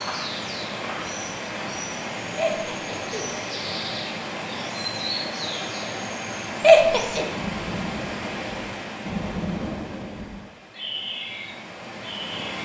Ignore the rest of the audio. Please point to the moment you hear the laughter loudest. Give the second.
7 s.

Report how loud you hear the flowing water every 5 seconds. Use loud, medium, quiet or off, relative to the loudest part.
loud, loud, medium.